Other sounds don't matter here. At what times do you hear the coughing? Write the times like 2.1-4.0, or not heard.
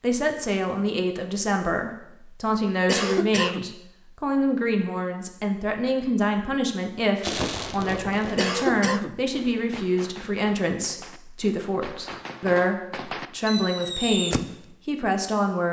2.9-3.8, 8.3-9.2.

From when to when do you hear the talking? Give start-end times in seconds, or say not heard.
0.0-15.6.